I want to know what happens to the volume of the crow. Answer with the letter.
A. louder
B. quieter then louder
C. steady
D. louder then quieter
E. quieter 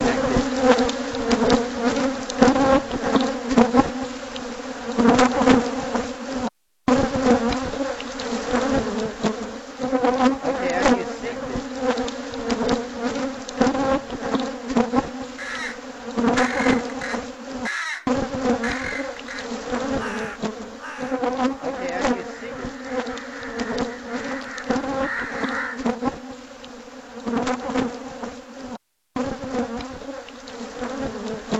B.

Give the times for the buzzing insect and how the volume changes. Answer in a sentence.
You can hear the buzzing insect from 0.0 to 31.5 s, getting quieter.